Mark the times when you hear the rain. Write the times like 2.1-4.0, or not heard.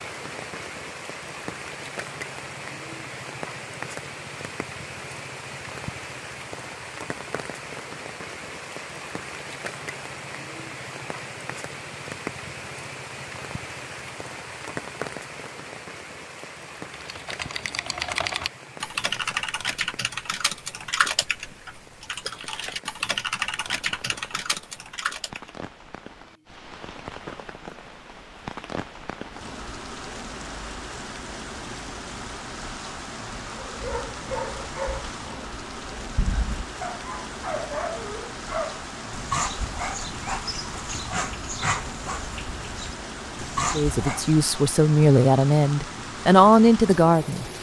0.0-47.5.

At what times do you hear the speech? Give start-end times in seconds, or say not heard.
43.7-47.5.